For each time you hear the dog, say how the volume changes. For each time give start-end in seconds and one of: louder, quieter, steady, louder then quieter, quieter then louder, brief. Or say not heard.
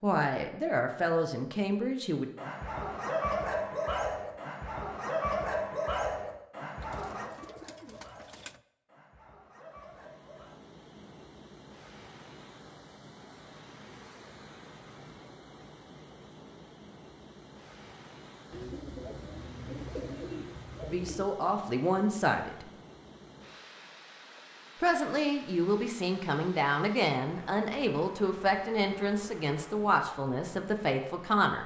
2.4-10.6 quieter.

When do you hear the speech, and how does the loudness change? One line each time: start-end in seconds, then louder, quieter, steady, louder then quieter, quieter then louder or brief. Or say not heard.
0.0-2.3 brief
20.9-22.6 brief
24.8-31.6 steady.